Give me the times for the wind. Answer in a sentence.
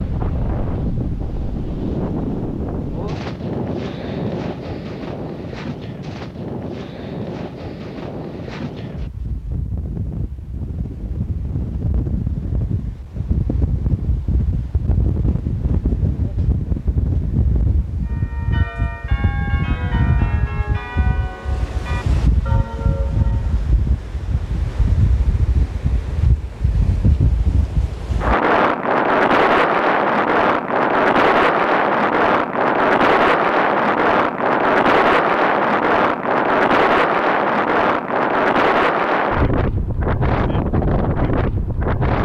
You can hear the wind from 0.0 to 42.2 s.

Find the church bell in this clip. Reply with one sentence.
The church bell can be heard from 18.1 to 23.6 s.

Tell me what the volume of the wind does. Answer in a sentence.
The loudness of the wind goes up.